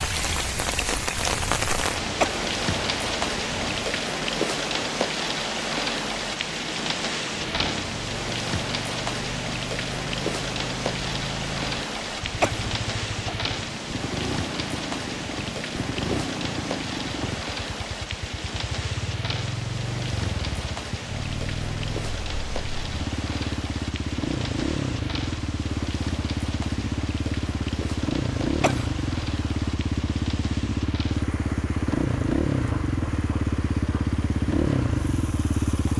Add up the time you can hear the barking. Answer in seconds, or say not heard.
not heard.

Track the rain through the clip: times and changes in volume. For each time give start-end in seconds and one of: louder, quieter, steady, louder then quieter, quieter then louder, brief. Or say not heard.
0.0-35.9 quieter.